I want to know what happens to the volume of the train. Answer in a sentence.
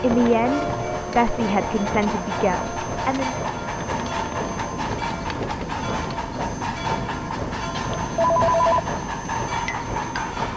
The volume of the train stays about the same.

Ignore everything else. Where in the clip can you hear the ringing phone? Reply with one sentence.
The ringing phone can be heard from 7.8 to 8.8 s.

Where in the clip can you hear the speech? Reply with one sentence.
The speech can be heard from 0.0 to 3.4 s.